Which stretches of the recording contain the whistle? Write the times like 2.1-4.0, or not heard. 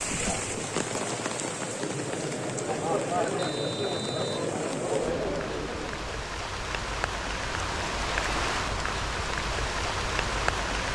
3.4-4.3.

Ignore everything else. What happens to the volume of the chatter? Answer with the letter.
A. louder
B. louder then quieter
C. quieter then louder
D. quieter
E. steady
A.